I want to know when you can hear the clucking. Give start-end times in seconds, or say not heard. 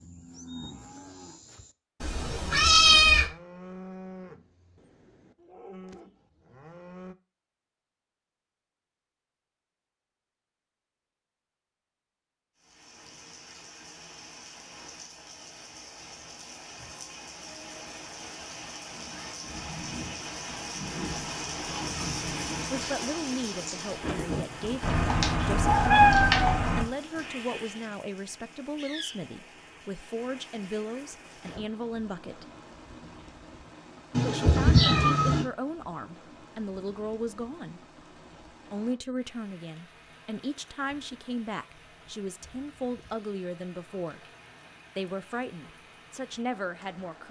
not heard.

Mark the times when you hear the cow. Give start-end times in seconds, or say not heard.
0.0-7.2.